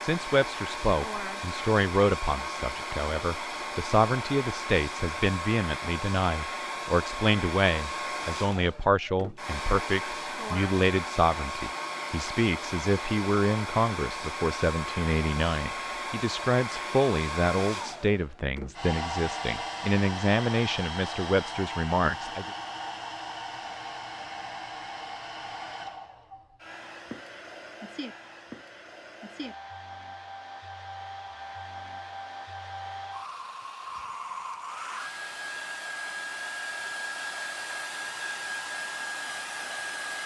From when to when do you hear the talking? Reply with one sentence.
You can hear the talking from 0.0 to 22.5 s.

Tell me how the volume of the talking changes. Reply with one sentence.
The loudness of the talking stays about the same.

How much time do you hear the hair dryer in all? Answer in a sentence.
The hair dryer can be heard for 40 seconds in total.